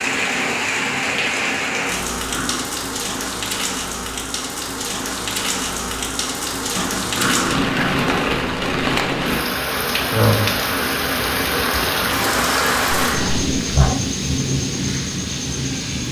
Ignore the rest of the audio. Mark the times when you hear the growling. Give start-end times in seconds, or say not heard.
1.9-2.7, 6.8-8.2, 12.9-14.0.